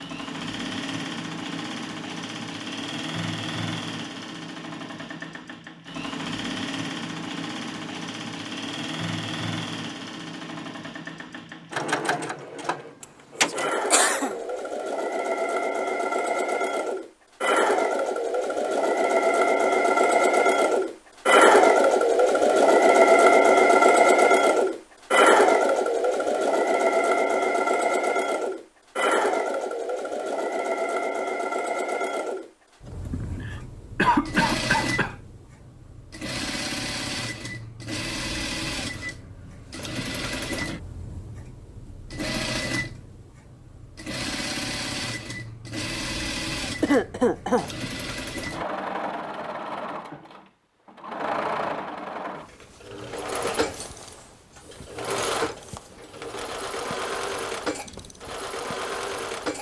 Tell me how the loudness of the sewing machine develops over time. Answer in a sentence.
The loudness of the sewing machine goes up, then down.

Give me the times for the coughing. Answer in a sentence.
The coughing can be heard from 13.9 to 14.3 s, from 33.0 to 35.1 s and from 46.8 to 47.7 s.